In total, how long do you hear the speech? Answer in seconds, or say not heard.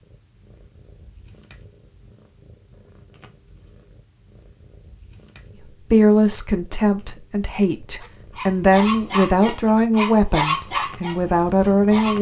6 s.